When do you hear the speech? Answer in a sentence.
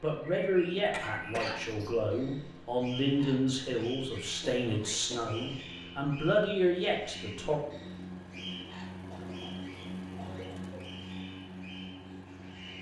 You can hear the speech from 0.0 to 7.6 s.